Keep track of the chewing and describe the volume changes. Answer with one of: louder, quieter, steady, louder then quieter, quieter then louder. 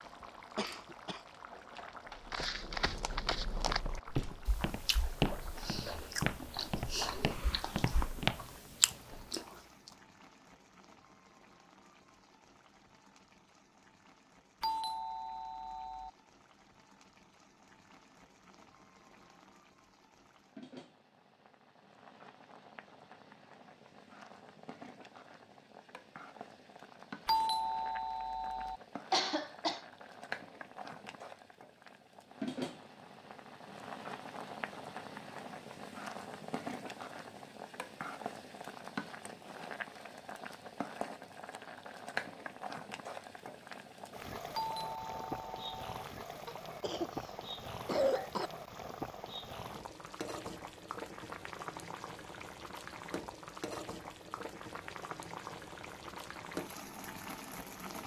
louder.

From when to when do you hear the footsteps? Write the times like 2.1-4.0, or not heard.
2.3-8.4.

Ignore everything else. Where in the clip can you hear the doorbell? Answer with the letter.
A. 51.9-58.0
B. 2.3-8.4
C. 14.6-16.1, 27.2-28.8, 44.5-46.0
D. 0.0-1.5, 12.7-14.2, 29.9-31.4
C.